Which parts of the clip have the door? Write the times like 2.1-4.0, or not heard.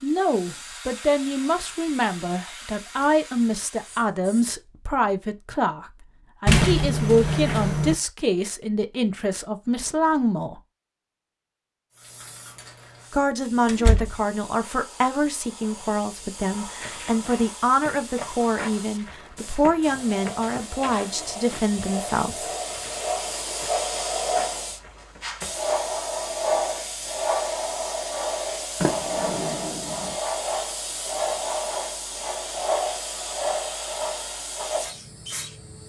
6.5-8.0, 13.7-14.2, 28.8-30.1.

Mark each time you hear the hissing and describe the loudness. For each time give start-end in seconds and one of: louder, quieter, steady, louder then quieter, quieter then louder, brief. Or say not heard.
0.0-4.5 quieter
11.9-35.8 louder.